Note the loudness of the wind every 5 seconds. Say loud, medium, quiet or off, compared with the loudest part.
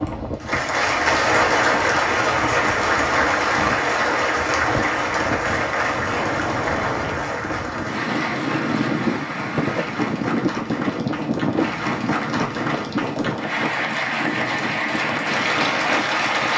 medium, loud, loud, medium.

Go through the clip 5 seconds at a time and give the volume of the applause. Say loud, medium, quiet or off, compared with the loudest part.
loud, medium, medium, loud.